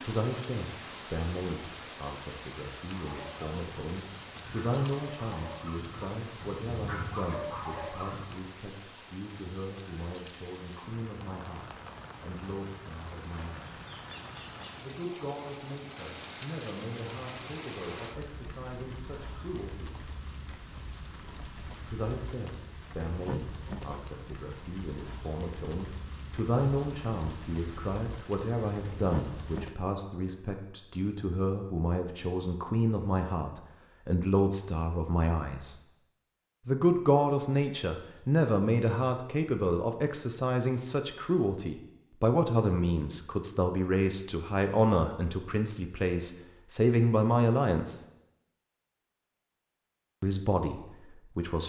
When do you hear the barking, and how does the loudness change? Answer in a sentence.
You can hear the barking from 2.9 to 8.4 s, getting louder.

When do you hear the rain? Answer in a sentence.
You can hear the rain from 0.0 to 29.8 s.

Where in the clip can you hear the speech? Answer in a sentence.
The speech can be heard from 0.0 to 13.8 s, from 14.8 to 19.9 s, from 21.9 to 35.8 s, from 36.6 to 48.0 s and from 50.2 to 51.6 s.